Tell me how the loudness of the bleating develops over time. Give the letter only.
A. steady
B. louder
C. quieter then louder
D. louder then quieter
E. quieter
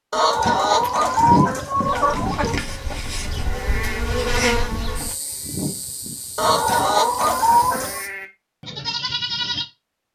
C.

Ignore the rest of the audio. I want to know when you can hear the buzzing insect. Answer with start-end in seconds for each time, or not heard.
1.9-8.1.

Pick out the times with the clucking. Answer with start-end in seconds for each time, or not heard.
0.1-2.6, 6.3-8.0.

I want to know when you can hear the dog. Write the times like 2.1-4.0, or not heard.
not heard.